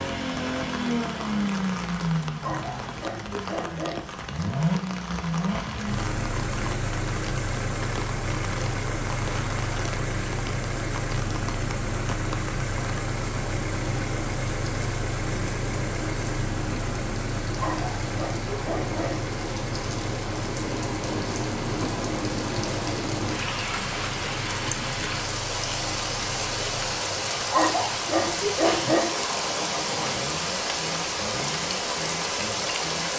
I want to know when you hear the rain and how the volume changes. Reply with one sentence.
The rain can be heard from 0.1 to 33.1 s, getting louder.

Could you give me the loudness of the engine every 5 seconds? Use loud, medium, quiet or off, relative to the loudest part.
loud, loud, loud, loud, medium, medium, medium.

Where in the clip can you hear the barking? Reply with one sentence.
The barking can be heard from 2.4 to 4.2 s, from 17.6 to 19.2 s and from 27.5 to 29.2 s.